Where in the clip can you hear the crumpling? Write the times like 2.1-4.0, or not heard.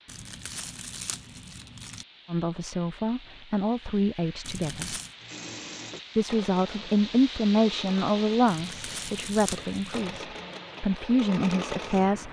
0.1-2.0, 4.4-5.2, 8.4-10.2.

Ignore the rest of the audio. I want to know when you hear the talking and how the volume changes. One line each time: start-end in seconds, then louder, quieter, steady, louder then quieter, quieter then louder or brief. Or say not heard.
2.2-5.0 brief
6.2-12.2 quieter then louder.